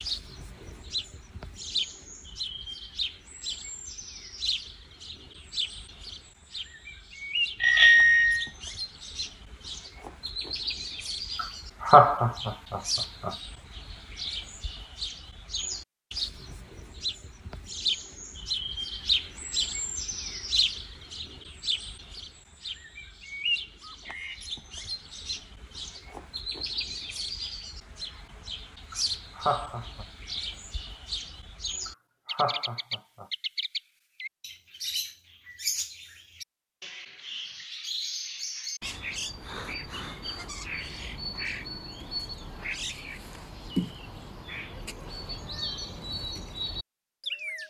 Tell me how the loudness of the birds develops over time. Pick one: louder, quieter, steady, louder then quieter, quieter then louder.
steady.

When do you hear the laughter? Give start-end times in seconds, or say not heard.
11.3-13.3, 28.9-30.1, 31.9-33.2.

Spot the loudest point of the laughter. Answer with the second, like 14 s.
12 s.